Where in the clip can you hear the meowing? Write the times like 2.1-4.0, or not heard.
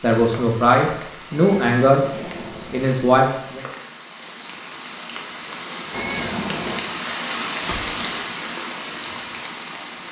1.3-2.9, 5.9-6.8.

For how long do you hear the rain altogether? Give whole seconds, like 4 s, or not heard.
10 s.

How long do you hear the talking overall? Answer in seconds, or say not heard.
3 s.